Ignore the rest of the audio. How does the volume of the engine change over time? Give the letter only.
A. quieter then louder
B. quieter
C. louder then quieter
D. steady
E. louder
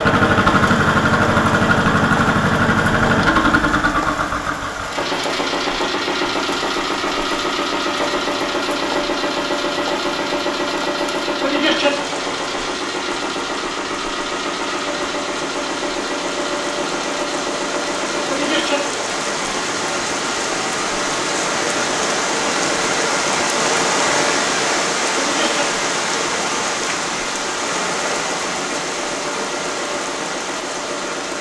B.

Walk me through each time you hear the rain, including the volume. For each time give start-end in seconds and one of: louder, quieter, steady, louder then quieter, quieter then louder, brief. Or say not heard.
0.0-31.3 louder.